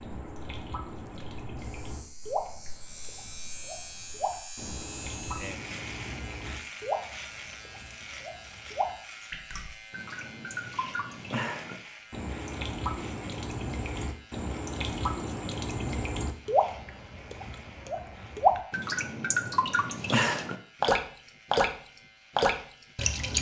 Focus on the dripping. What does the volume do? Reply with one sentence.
The volume of the dripping goes up.